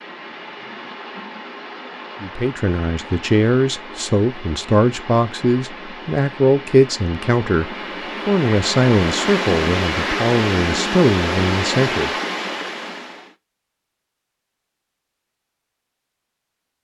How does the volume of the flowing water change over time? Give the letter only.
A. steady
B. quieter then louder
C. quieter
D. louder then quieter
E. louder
E.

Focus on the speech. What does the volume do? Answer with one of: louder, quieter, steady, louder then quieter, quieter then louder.
steady.